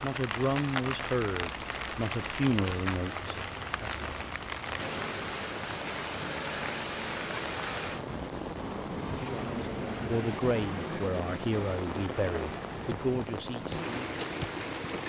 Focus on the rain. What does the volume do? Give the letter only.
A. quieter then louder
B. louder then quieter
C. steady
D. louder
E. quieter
C.